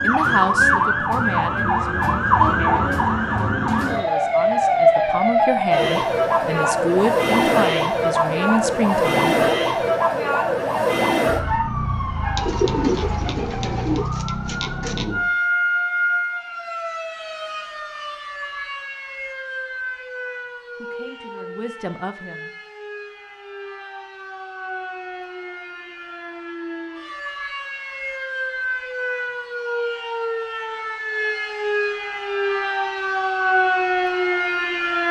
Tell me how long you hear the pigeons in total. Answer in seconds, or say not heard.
3 s.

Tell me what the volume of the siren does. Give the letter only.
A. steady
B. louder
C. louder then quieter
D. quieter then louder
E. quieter
D.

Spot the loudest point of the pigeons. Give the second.
13 s.